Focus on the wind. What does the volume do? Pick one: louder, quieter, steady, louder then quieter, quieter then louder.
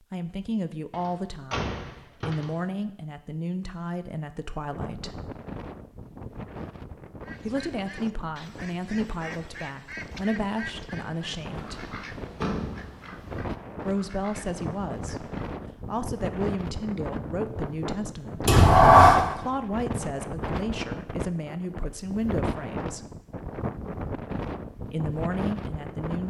louder.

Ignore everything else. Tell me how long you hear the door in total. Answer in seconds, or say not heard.
4 s.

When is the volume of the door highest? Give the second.
19 s.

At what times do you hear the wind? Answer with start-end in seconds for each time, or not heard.
4.7-26.2.